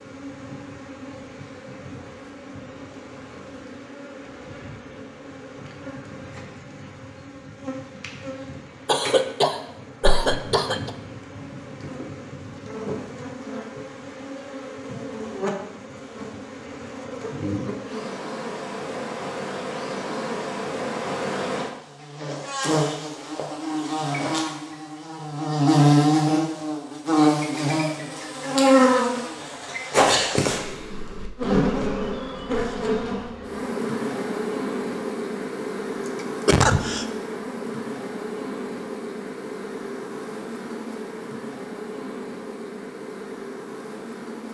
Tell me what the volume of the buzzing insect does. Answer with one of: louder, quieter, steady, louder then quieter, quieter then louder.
louder then quieter.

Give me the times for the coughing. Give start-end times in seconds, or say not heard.
8.8-10.9, 36.2-37.0.